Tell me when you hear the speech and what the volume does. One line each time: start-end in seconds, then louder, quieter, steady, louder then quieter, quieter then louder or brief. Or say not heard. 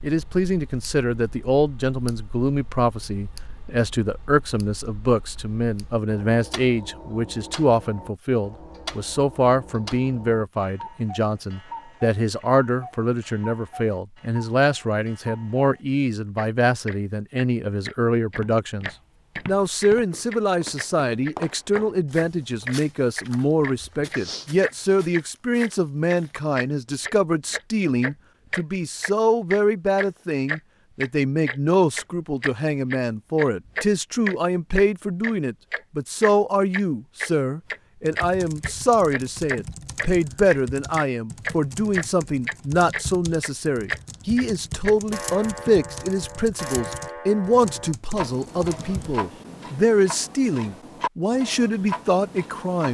0.0-52.8 steady.